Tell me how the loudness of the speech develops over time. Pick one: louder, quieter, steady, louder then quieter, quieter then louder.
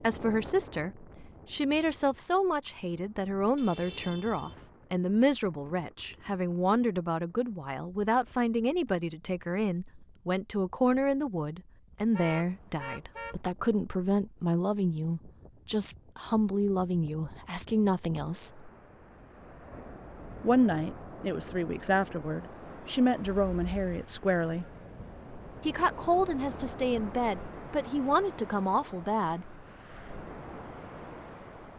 steady.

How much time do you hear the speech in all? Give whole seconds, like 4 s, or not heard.
27 s.